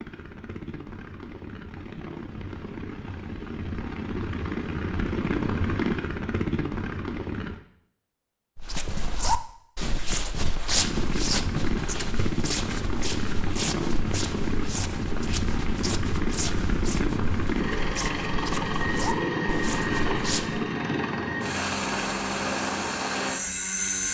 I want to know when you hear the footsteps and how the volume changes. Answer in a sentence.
The footsteps can be heard from 8.6 to 20.6 s, getting quieter.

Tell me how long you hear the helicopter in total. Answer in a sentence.
The helicopter can be heard for 21 seconds in total.